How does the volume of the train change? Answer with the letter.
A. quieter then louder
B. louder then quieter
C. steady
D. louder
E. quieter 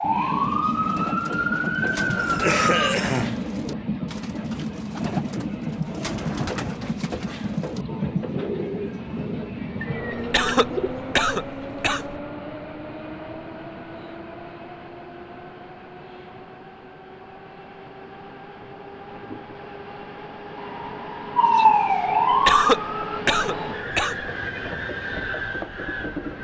A.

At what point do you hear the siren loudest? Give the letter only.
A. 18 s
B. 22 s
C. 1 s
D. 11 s
B.